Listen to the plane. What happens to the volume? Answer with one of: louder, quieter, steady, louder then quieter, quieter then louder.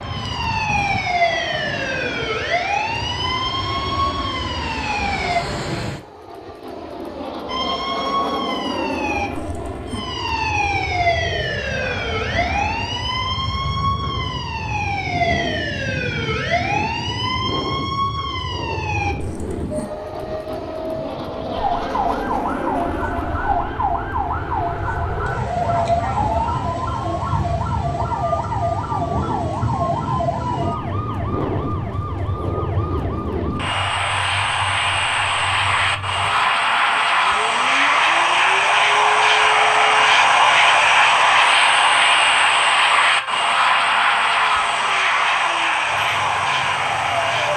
louder.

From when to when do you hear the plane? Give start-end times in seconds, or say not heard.
0.0-47.5.